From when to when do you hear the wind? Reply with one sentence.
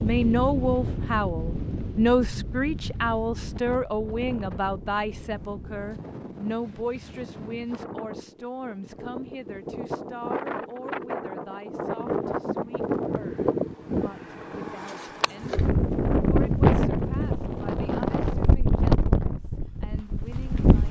You can hear the wind from 0.0 to 20.8 s.